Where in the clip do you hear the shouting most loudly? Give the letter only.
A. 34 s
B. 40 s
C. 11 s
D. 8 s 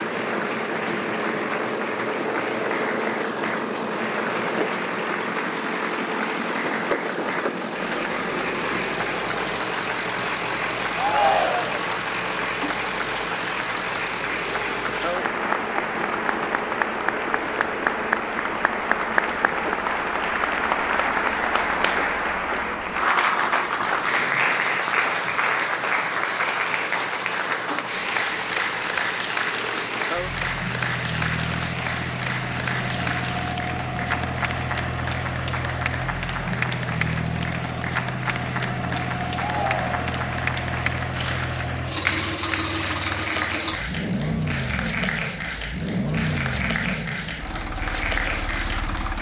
C.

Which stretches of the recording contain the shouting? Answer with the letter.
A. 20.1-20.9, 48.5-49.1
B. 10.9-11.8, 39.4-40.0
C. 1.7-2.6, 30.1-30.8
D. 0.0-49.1
B.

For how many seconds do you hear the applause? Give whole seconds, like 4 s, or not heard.
49 s.